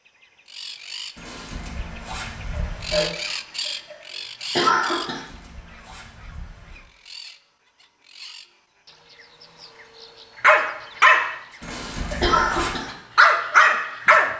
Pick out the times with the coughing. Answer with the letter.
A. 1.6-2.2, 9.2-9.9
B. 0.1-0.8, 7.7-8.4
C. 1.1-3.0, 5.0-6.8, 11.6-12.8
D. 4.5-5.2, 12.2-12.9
D.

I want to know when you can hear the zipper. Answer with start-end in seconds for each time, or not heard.
1.1-3.0, 5.0-6.8, 11.6-12.8.